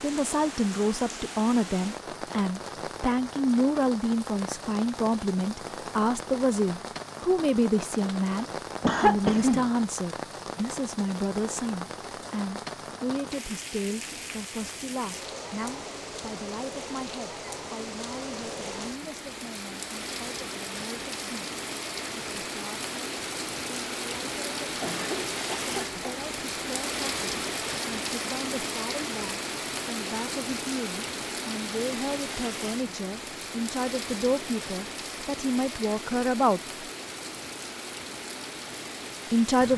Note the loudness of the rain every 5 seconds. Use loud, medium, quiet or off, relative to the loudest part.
medium, medium, medium, medium, loud, loud, loud, medium.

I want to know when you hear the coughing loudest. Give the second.
9 s.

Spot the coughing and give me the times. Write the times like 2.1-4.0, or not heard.
8.8-9.7, 24.8-26.1.